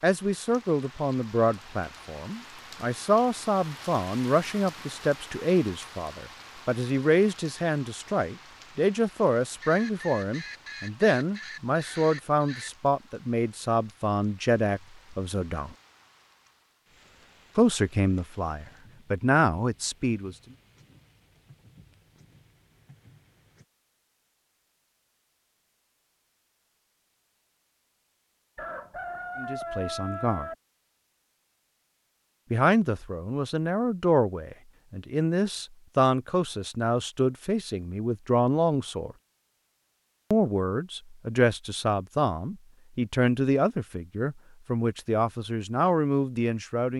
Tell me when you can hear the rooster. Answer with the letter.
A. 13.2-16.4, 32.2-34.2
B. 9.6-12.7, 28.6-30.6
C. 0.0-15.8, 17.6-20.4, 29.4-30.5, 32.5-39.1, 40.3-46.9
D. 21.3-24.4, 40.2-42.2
B.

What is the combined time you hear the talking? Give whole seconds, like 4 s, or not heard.
33 s.